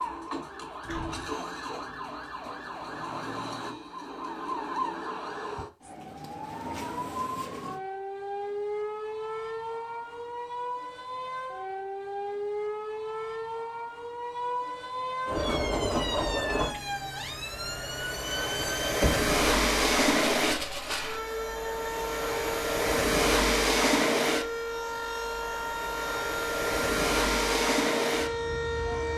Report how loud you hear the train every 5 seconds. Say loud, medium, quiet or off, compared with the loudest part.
off, off, off, loud, loud, loud.